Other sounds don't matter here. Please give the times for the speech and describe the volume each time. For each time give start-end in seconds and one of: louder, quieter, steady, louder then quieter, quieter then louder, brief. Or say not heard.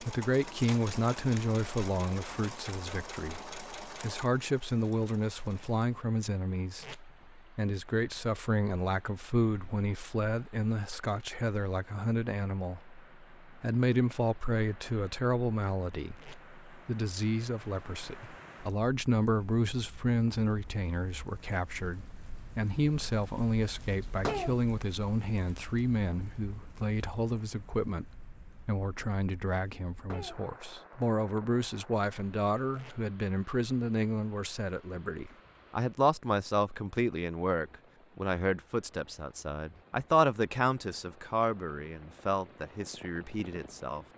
0.0-44.0 steady.